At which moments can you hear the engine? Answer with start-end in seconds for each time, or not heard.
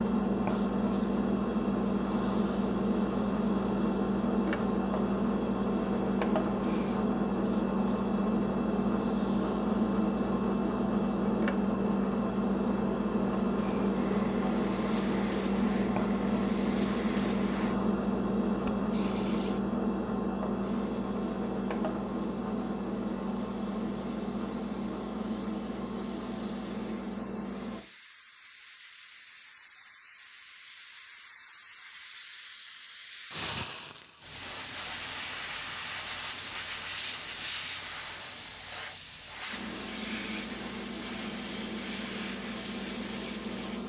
0.0-27.9, 39.5-43.8.